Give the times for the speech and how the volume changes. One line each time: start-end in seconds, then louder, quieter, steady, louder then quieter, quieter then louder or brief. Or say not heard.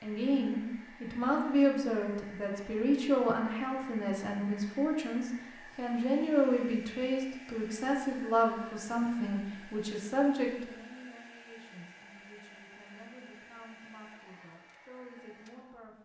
0.0-16.0 quieter.